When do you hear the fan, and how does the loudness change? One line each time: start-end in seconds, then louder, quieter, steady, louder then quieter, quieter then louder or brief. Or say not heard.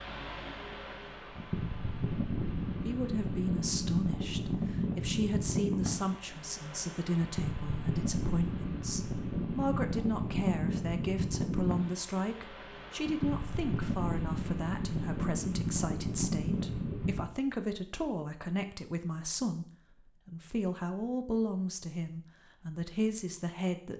0.0-17.2 steady.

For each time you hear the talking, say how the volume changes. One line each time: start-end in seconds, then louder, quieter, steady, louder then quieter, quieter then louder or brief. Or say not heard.
2.9-23.9 steady.